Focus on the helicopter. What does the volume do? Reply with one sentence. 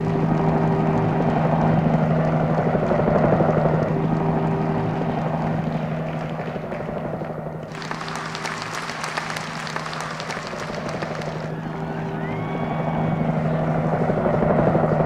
The loudness of the helicopter goes down, then up.